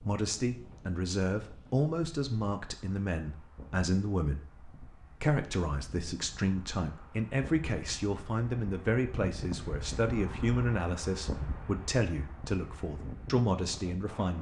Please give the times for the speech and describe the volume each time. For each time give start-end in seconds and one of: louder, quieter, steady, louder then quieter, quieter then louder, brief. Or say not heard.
0.0-14.3 steady.